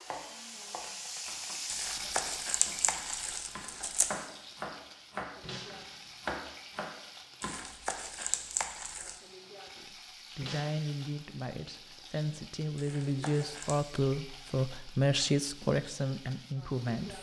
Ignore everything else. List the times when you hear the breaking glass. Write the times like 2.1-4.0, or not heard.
5.4-6.2, 10.4-11.0.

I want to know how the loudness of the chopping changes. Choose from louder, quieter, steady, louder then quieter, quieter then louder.
louder.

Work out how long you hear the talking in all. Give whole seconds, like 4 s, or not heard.
7 s.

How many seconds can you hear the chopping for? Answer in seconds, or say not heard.
8 s.